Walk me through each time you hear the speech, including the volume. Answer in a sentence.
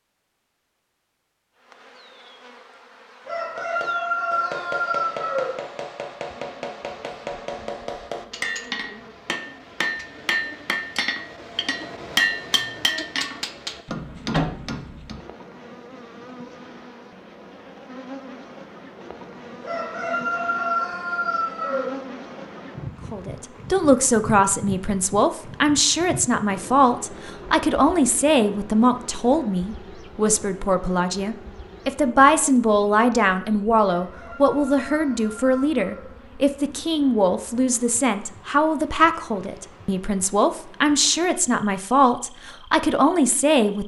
The speech can be heard from 23.1 to 43.8 s, at a steady volume.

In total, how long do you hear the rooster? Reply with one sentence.
The rooster can be heard for 7 seconds in total.